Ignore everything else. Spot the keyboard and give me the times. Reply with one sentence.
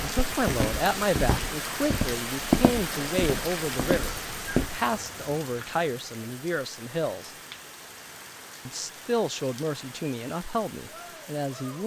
You can't hear the keyboard here.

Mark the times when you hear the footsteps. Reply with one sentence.
You can hear the footsteps from 0.0 to 4.7 s.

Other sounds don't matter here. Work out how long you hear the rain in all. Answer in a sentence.
You can hear the rain for 12 seconds altogether.